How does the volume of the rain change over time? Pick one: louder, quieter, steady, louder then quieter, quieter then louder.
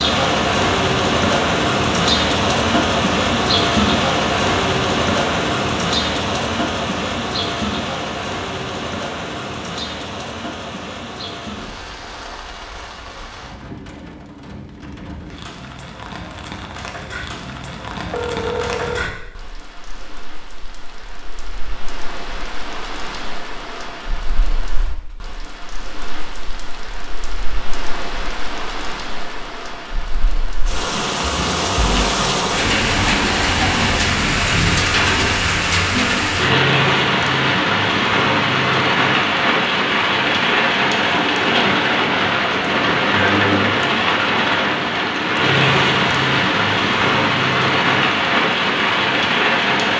quieter then louder.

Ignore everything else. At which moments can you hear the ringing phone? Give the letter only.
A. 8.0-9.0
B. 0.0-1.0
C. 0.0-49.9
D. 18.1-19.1
D.